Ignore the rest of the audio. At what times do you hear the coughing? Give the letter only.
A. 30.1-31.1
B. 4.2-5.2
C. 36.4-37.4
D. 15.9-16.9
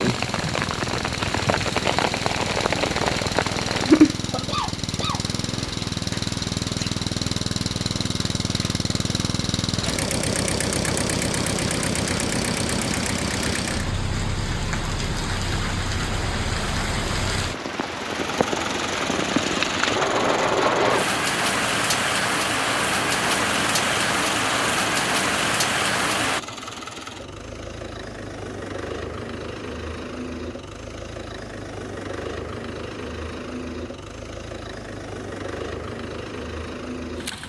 B.